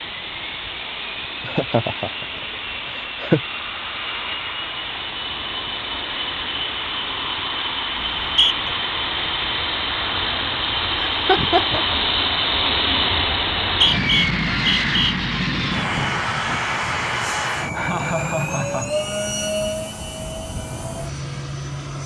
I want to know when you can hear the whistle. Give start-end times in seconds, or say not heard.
8.0-8.7, 13.4-14.9.